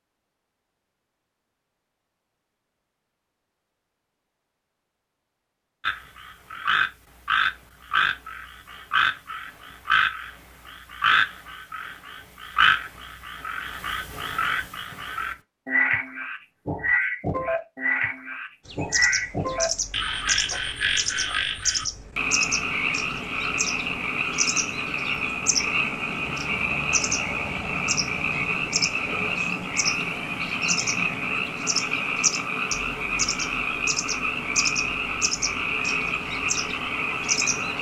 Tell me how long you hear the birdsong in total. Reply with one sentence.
You can hear the birdsong for 19 seconds altogether.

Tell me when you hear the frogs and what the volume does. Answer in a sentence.
The frogs can be heard from 5.8 to 37.7 s, at a steady volume.